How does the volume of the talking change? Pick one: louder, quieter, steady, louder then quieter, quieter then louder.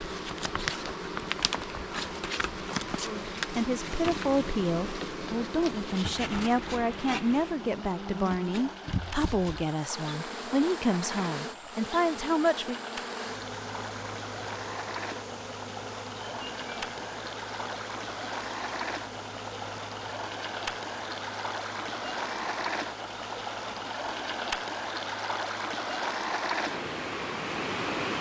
steady.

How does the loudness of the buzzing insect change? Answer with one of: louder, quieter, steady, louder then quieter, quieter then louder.
quieter.